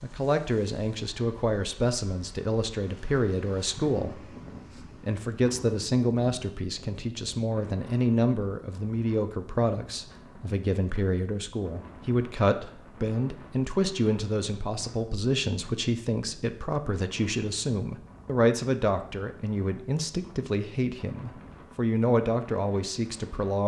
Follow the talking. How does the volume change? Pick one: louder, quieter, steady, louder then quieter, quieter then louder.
steady.